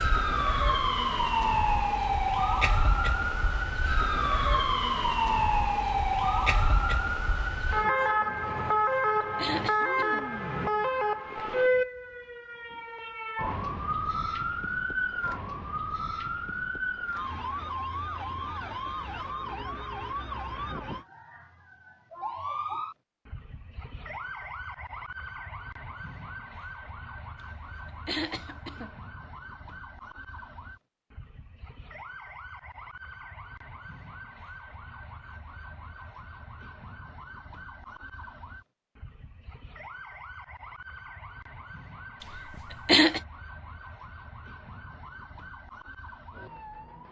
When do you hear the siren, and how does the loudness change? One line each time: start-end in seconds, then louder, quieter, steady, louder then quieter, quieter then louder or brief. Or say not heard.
0.0-47.0 quieter.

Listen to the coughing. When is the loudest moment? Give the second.
43 s.